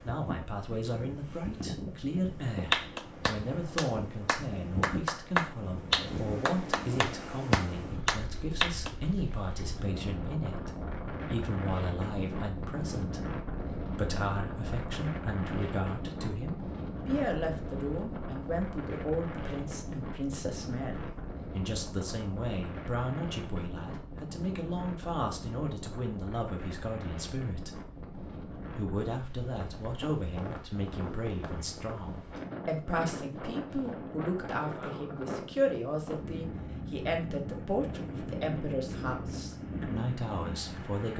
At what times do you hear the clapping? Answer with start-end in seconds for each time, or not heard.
2.7-8.9.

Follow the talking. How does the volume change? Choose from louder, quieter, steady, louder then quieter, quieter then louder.
steady.